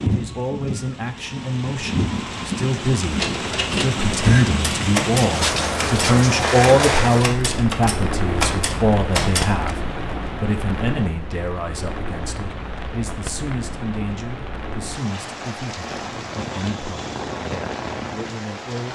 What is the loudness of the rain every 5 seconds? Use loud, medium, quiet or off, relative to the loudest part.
loud, loud, medium, medium.